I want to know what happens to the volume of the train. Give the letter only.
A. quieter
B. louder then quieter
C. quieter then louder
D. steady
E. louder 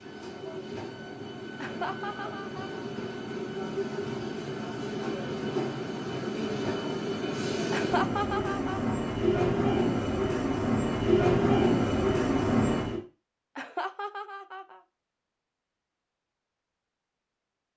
E.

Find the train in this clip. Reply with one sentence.
You can hear the train from 0.0 to 13.0 s.